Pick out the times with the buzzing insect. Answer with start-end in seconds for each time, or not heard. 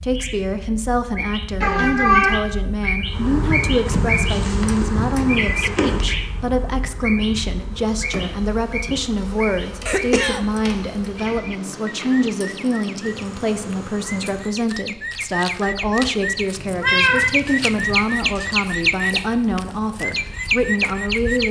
3.0-14.6.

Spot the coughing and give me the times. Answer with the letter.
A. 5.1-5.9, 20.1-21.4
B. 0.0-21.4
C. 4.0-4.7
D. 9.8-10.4
D.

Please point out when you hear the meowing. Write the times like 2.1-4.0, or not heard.
1.6-2.4, 16.6-17.9.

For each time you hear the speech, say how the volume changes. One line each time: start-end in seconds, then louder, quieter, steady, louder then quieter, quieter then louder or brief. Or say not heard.
0.0-21.4 steady.